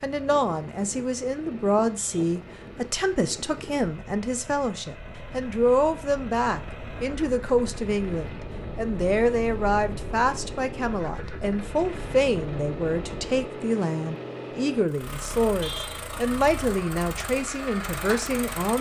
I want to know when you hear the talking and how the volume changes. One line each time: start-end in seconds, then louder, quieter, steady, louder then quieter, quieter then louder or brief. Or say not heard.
0.0-18.7 steady.